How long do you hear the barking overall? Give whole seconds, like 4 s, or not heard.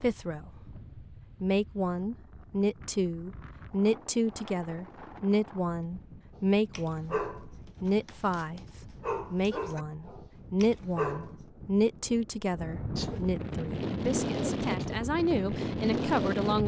5 s.